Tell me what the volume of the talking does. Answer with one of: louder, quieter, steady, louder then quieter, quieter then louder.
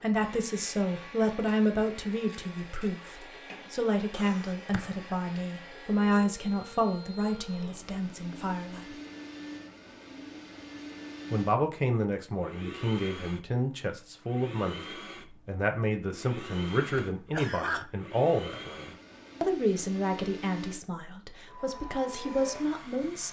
steady.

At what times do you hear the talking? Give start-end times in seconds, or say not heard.
0.0-8.9, 11.3-23.2.